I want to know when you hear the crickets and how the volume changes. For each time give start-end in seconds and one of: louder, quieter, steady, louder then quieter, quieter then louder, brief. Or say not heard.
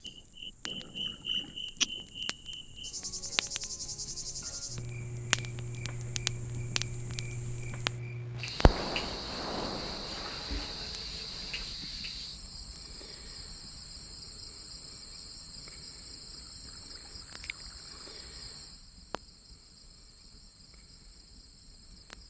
0.0-22.2 quieter.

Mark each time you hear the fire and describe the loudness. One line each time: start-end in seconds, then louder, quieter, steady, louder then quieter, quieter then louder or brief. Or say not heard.
0.0-22.2 louder then quieter.